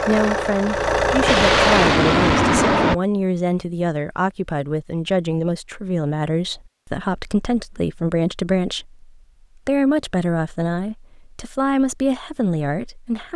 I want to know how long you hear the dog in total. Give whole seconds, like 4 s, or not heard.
not heard.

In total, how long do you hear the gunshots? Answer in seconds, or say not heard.
2 s.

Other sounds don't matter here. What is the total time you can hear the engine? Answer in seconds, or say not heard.
2 s.